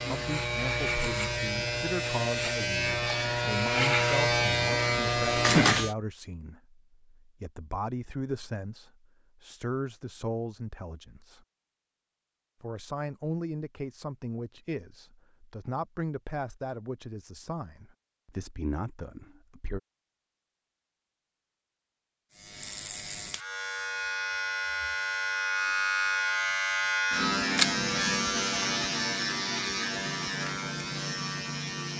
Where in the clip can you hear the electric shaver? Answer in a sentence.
You can hear the electric shaver from 0.0 to 6.0 s and from 22.3 to 31.9 s.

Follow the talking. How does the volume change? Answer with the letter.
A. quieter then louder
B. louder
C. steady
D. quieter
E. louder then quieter
C.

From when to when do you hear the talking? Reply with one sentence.
You can hear the talking from 0.1 to 11.4 s and from 12.6 to 19.8 s.